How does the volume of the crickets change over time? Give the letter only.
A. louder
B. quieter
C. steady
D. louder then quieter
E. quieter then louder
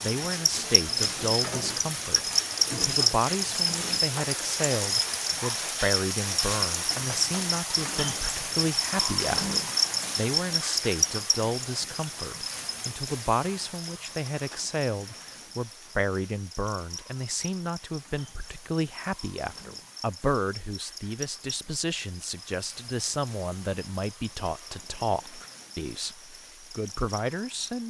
B.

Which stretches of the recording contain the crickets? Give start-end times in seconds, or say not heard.
0.0-27.8.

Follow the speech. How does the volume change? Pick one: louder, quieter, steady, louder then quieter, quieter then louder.
steady.